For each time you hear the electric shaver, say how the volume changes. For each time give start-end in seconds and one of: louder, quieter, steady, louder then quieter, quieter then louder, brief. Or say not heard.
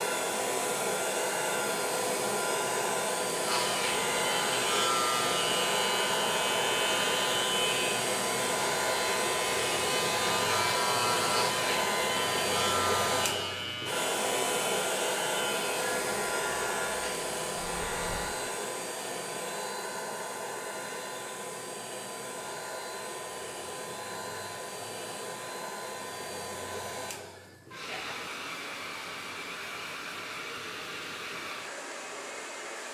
3.4-18.3 quieter.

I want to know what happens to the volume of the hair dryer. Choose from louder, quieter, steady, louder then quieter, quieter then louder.
quieter.